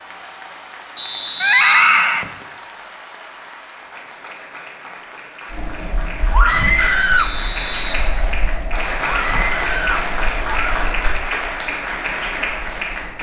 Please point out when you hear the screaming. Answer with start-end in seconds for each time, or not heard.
1.4-2.2, 6.3-7.3, 9.1-10.8.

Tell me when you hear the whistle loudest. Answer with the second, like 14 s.
1 s.